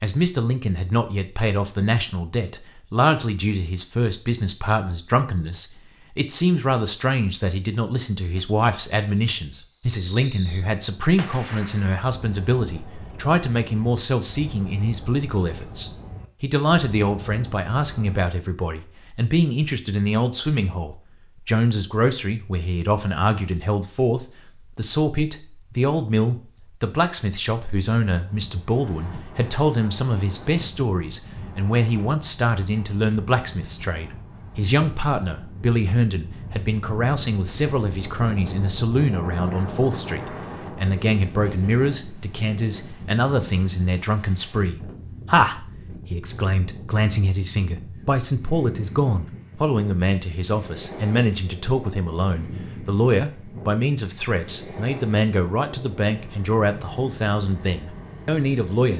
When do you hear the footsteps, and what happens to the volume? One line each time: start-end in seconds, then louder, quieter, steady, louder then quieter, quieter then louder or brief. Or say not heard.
not heard.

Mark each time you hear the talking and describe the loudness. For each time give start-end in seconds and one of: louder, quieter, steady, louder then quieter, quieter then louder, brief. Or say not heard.
0.0-58.9 steady.